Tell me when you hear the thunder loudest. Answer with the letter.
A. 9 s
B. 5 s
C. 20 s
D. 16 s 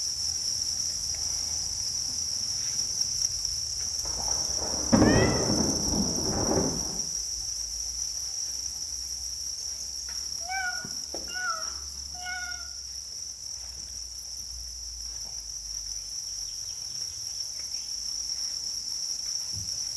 B.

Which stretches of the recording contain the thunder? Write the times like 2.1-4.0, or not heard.
4.0-7.0.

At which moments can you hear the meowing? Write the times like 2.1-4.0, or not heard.
5.0-5.5, 10.1-12.7.